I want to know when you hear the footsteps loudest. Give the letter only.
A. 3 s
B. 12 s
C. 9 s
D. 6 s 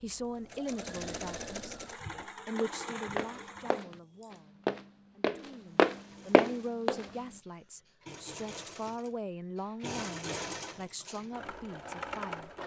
D.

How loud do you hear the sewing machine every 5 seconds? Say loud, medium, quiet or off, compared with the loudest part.
loud, medium, loud.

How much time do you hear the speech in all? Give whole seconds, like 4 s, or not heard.
12 s.